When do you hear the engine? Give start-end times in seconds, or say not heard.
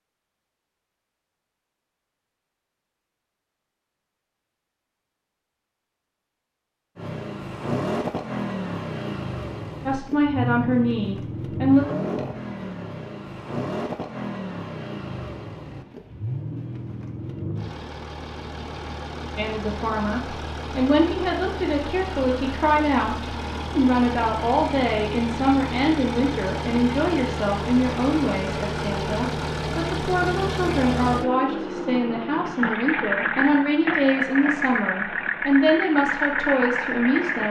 7.0-37.4.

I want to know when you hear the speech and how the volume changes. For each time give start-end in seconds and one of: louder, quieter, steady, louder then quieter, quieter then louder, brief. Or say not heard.
9.8-11.8 brief
19.4-37.4 steady.